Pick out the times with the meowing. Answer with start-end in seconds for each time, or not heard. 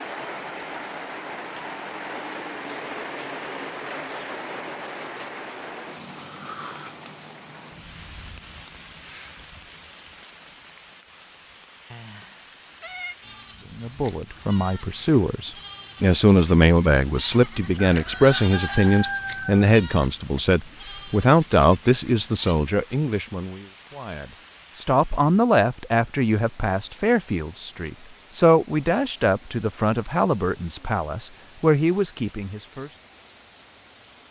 11.9-13.2.